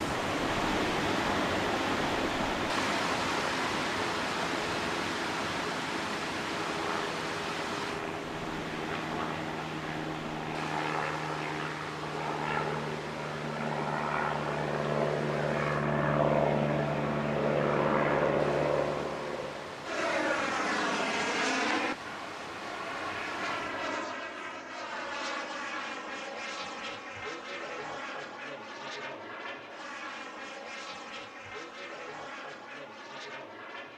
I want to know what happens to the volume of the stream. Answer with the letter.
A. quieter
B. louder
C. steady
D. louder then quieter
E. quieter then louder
A.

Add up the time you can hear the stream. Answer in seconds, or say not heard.
24 s.